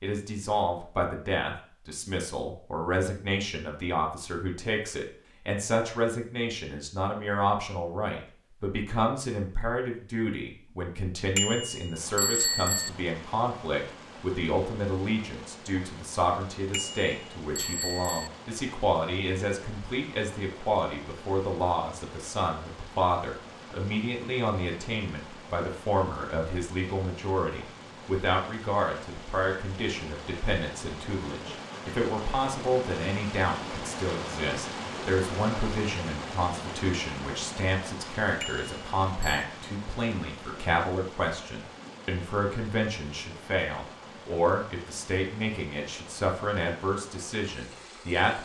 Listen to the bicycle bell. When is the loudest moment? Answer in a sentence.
The volume of the bicycle bell peaks at 12 seconds.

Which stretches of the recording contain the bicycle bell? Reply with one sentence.
The bicycle bell can be heard from 11.3 to 12.9 s, from 16.7 to 18.3 s and from 38.4 to 39.5 s.